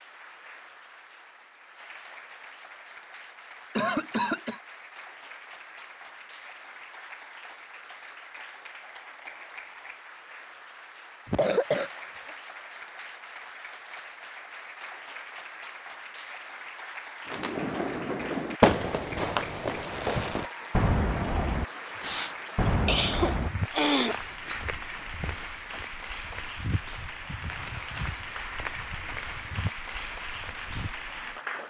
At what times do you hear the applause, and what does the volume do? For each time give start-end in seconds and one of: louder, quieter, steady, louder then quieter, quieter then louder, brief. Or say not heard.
0.0-31.6 louder.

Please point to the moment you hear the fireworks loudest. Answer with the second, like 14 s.
19 s.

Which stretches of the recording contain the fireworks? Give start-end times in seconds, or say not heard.
17.2-23.5.